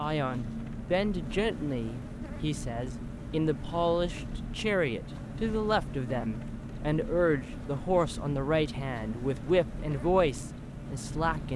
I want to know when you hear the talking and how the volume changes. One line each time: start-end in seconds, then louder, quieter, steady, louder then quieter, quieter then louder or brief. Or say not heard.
0.0-11.5 steady.